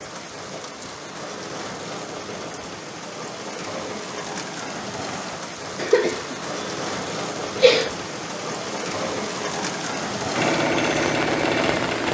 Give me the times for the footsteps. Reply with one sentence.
The footsteps can't be heard in this clip.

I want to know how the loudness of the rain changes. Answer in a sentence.
The loudness of the rain goes up.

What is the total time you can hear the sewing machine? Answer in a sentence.
The sewing machine can be heard for 2 seconds in total.